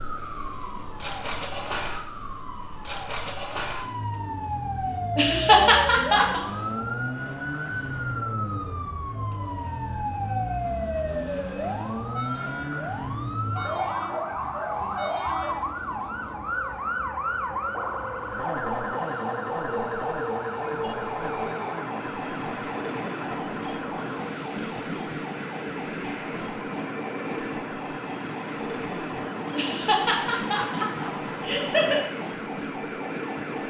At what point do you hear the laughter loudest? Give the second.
6 s.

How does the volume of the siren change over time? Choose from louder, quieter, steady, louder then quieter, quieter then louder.
quieter.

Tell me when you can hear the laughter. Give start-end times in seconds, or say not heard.
5.2-6.4, 29.6-32.0.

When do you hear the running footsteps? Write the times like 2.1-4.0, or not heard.
not heard.